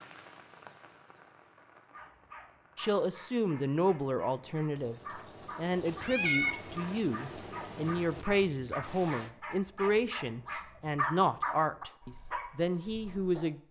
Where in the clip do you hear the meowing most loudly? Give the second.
6 s.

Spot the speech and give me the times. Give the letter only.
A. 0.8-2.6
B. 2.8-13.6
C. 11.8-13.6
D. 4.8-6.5
B.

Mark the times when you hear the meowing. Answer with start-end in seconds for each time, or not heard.
4.8-6.5.